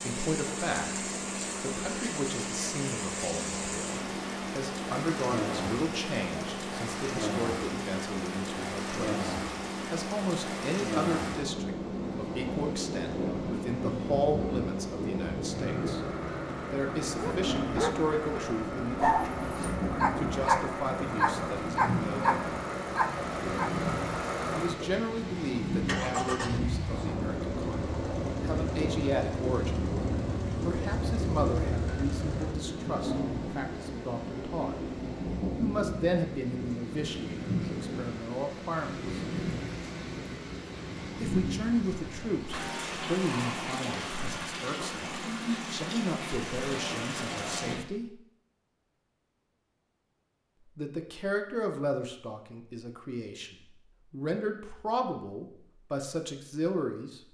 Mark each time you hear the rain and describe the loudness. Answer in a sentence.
You can hear the rain from 0.0 to 47.8 s, at a steady volume.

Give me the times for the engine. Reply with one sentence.
You can hear the engine from 0.0 to 32.5 s.